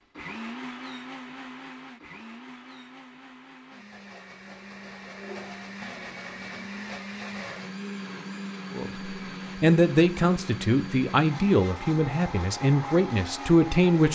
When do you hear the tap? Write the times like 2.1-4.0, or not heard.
4.2-6.7.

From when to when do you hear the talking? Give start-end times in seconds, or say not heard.
8.8-14.1.